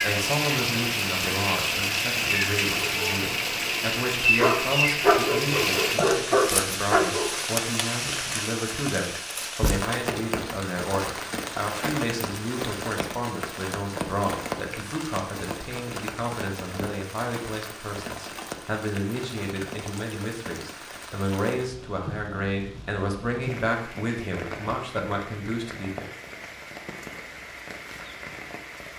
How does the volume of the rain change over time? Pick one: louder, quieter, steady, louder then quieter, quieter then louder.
quieter.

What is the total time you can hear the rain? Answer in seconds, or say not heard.
29 s.